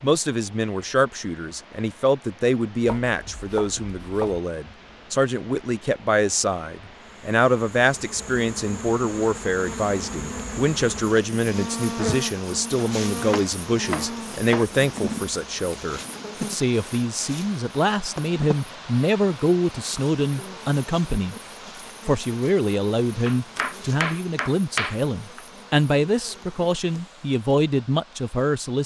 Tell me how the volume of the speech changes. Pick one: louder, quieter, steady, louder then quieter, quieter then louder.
steady.